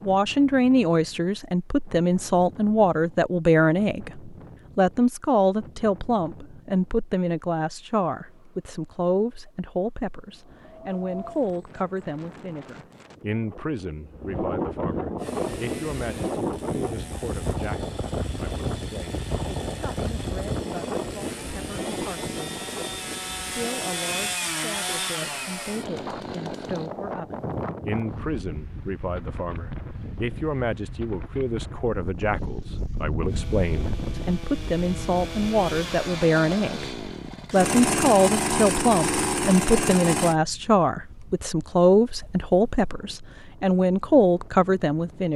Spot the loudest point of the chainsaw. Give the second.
38 s.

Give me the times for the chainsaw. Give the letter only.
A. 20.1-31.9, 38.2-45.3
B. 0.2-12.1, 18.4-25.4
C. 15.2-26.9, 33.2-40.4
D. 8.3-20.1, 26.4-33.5
C.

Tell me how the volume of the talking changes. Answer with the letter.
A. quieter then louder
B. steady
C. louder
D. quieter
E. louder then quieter
A.